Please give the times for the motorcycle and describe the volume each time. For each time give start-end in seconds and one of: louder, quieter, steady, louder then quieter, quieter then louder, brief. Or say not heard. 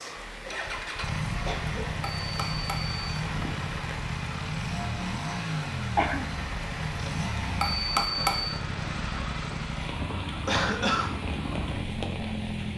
0.0-12.7 steady.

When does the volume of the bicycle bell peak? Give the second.
8 s.